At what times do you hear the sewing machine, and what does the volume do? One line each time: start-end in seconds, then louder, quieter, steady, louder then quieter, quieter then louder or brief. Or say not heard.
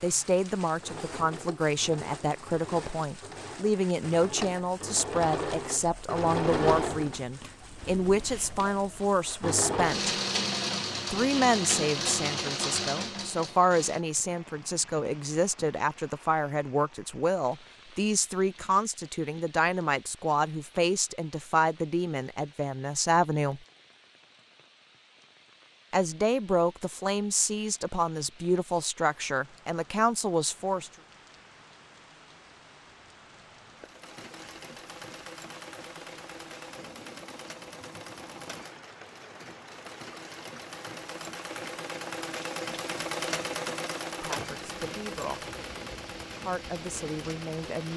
0.0-14.0 louder
33.7-47.9 louder then quieter.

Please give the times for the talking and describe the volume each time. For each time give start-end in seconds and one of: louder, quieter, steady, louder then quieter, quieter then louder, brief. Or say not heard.
0.0-10.2 steady
11.1-23.6 steady
25.9-30.9 steady
44.2-45.5 brief
46.4-47.9 brief.